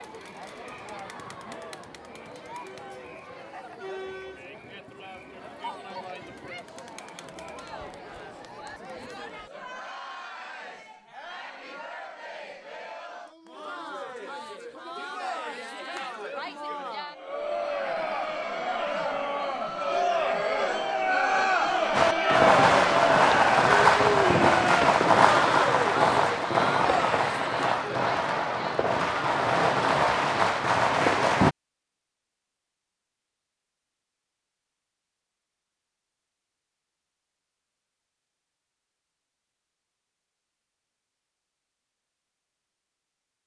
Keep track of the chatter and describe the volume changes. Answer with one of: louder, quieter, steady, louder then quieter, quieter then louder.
louder.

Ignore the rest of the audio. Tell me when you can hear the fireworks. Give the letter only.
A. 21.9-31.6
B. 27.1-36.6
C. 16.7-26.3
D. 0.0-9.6
A.